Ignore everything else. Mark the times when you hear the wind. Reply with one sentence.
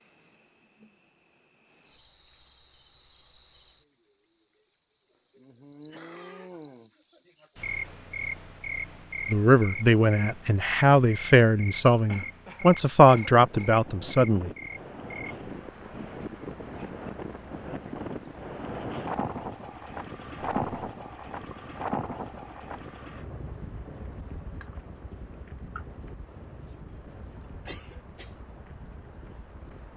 You can hear the wind from 13.3 to 29.9 s.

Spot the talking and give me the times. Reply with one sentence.
The talking can be heard from 9.3 to 14.5 s.